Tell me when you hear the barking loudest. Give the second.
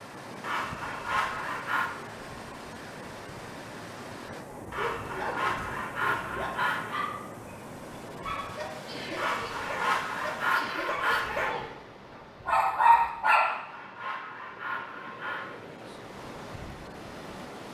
13 s.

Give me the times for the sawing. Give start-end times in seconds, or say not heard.
0.4-1.9, 4.7-7.1, 9.2-11.6, 13.3-15.6.